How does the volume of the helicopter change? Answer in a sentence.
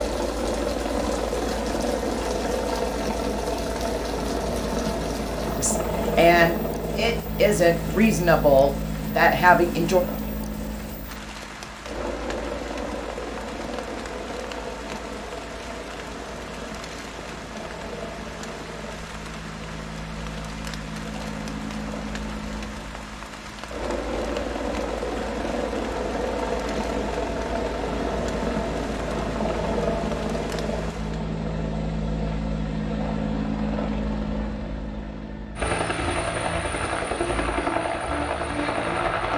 The loudness of the helicopter goes down, then up.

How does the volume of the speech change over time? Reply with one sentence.
The loudness of the speech goes down, then up.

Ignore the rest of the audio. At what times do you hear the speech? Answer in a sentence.
You can hear the speech from 5.5 to 10.0 s.